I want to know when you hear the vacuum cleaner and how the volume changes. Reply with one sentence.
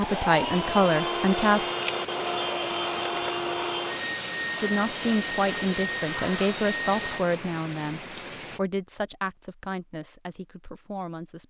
The vacuum cleaner can be heard from 0.0 to 7.2 s, at a steady volume.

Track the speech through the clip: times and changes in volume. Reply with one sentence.
You can hear the speech briefly from 0.0 to 1.6 s; and from 4.6 to 11.4 s, getting quieter.